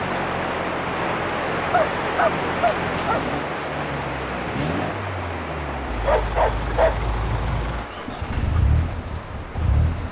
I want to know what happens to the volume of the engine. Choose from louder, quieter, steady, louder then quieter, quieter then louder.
louder.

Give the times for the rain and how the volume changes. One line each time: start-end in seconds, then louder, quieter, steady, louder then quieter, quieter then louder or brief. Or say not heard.
0.0-10.0 quieter.